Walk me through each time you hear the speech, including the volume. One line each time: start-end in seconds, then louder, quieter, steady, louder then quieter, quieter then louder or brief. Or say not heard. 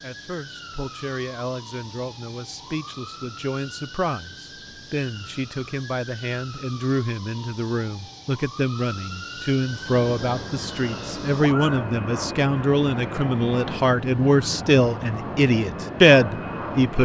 0.0-17.0 louder.